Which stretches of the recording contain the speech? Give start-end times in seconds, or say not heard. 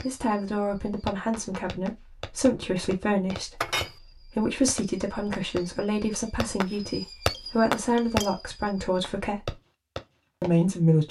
0.0-9.6, 10.4-11.0.